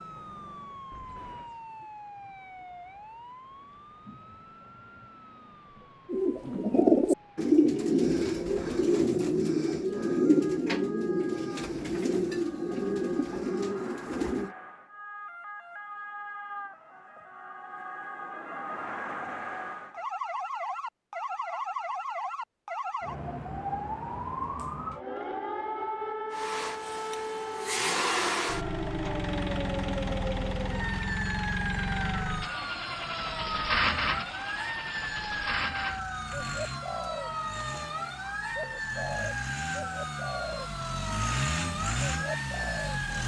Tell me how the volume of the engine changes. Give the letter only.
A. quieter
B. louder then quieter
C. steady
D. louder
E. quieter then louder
E.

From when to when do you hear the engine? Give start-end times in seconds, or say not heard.
26.3-43.2.